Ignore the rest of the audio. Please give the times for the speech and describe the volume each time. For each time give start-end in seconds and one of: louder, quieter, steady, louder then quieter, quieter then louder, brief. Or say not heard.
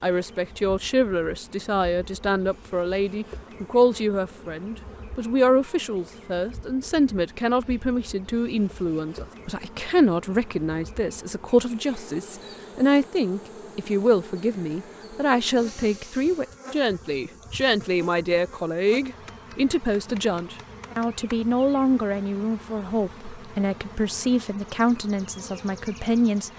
0.0-26.5 steady.